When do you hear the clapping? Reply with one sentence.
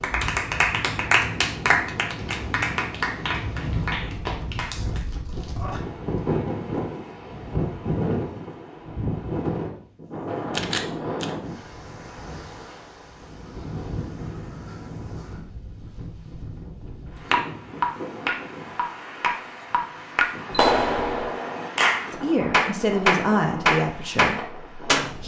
The clapping can be heard from 0.0 to 5.0 s and from 17.3 to 25.1 s.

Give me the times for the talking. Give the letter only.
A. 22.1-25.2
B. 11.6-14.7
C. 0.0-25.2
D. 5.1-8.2
A.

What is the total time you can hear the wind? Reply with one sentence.
You can hear the wind for 25 seconds altogether.